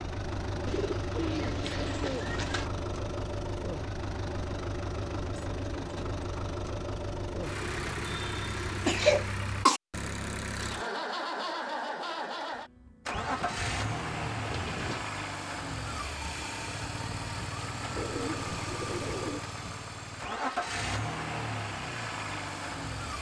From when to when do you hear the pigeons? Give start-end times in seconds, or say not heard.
0.7-2.6, 7.5-9.2, 13.1-15.1, 17.9-19.4.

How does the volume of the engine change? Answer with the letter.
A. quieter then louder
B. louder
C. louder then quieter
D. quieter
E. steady
E.